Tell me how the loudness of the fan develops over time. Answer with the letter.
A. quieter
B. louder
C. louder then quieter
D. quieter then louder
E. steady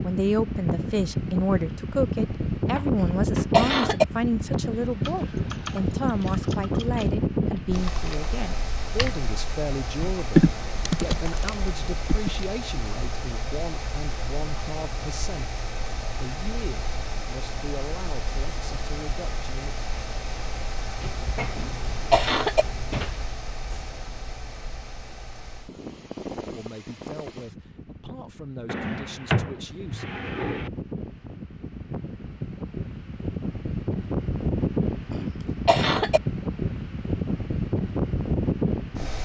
D.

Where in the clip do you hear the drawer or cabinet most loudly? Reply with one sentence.
The volume of the drawer or cabinet peaks at 29 seconds.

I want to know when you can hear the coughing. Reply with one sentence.
You can hear the coughing from 3.0 to 4.0 s, from 21.6 to 22.6 s and from 35.1 to 36.2 s.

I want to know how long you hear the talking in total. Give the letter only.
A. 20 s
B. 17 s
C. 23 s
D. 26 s
C.